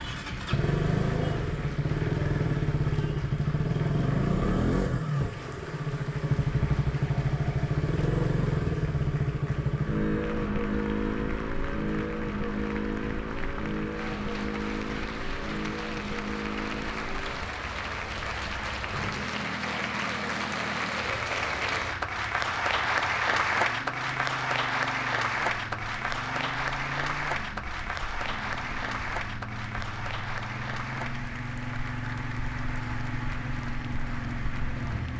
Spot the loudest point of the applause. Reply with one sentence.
The loudest moment of the applause is at 23 seconds.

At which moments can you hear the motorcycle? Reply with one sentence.
You can hear the motorcycle from 0.0 to 35.1 s.